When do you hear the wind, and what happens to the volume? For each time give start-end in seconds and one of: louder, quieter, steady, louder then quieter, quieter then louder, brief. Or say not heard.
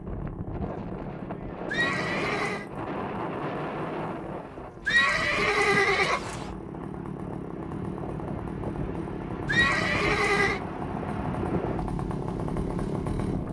0.0-13.4 quieter then louder.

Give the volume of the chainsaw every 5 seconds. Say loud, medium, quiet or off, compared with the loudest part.
medium, loud, loud.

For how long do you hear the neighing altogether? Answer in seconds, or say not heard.
4 s.